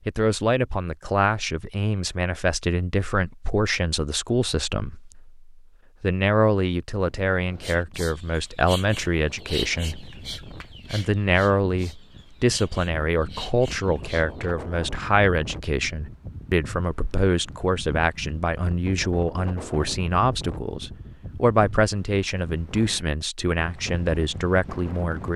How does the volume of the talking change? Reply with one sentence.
The loudness of the talking stays about the same.